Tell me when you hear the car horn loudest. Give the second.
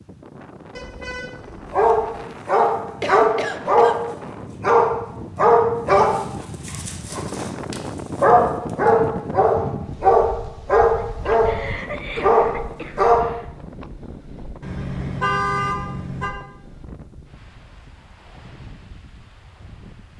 15 s.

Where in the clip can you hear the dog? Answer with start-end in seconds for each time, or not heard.
1.7-13.2.